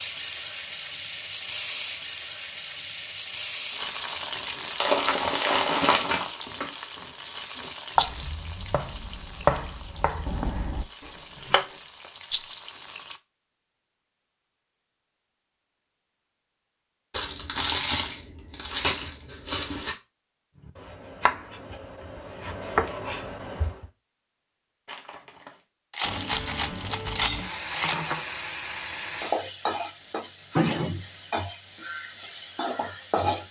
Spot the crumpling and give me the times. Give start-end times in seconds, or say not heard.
4.8-6.2, 17.1-19.9, 24.9-25.6.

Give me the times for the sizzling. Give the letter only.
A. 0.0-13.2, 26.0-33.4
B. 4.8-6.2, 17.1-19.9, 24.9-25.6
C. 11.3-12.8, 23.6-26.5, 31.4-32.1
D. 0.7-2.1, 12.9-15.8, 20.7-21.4
A.